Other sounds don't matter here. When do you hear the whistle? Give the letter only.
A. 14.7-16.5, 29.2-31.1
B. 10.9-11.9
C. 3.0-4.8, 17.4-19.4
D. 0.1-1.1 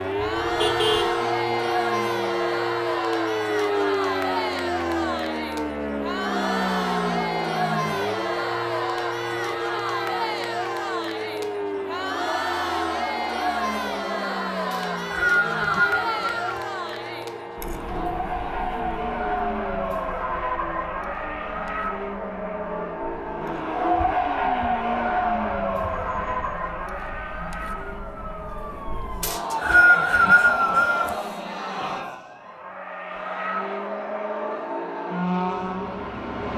A.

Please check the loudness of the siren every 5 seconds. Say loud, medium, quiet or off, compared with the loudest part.
loud, loud, medium, medium, quiet, quiet, off, off.